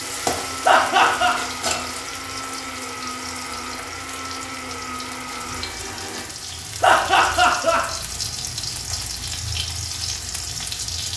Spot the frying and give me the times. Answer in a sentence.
The frying can be heard from 0.0 to 11.1 s.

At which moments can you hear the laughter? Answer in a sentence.
The laughter can be heard from 0.6 to 1.4 s and from 6.8 to 7.8 s.